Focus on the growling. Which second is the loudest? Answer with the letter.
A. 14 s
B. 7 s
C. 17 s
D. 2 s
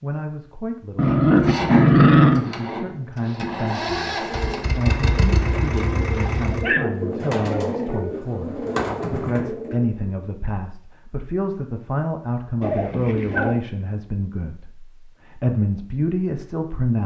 D.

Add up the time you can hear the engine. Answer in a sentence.
The engine can be heard for 5 seconds in total.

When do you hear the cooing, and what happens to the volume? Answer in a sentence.
The cooing can be heard from 4.1 to 10.2 s, getting louder.